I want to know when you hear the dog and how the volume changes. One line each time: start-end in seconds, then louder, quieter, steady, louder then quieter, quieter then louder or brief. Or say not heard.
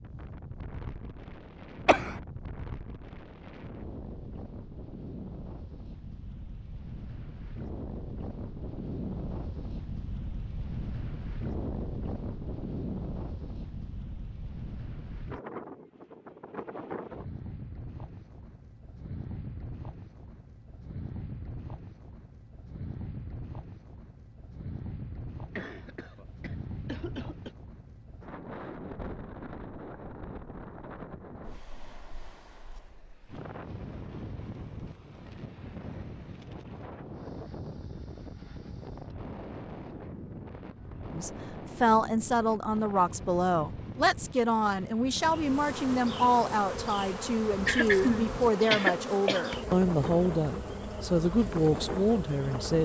not heard.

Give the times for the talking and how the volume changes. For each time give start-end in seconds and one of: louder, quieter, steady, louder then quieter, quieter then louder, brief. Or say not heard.
41.1-52.7 steady.